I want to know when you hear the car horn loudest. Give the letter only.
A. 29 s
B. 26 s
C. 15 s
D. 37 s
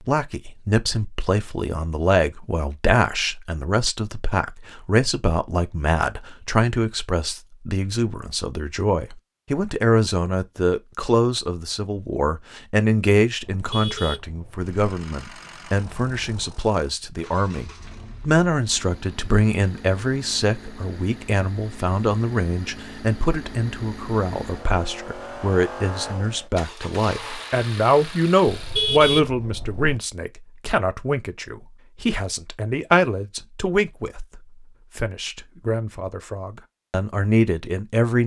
A.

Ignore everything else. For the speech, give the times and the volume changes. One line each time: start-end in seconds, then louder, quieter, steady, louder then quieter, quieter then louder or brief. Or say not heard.
0.1-38.2 steady.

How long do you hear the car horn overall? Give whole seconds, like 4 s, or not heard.
3 s.